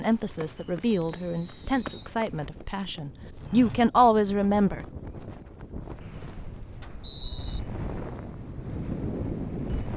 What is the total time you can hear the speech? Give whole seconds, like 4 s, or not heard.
5 s.